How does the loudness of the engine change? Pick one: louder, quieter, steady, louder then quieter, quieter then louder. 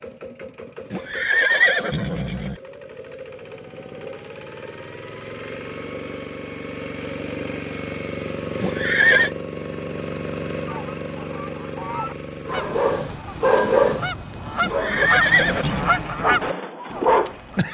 louder.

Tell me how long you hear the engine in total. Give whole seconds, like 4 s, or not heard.
13 s.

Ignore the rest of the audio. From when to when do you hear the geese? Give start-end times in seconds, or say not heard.
10.7-17.6.